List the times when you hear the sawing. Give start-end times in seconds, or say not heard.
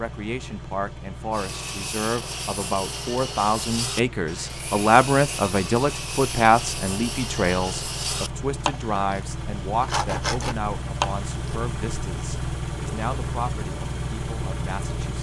1.3-11.6.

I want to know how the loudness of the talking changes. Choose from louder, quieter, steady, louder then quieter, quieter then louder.
louder then quieter.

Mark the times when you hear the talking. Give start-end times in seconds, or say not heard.
0.0-15.1.